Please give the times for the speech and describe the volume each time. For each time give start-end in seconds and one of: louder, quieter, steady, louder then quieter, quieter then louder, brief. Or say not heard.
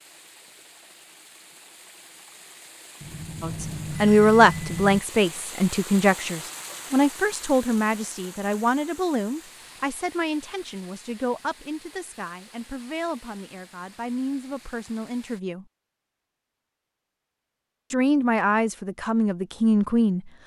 3.4-15.7 quieter
17.9-20.3 brief.